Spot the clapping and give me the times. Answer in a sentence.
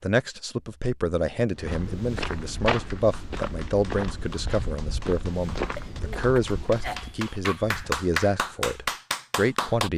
You can hear the clapping from 2.7 to 9.9 s.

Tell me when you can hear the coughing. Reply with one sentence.
The coughing can be heard from 5.8 to 7.8 s.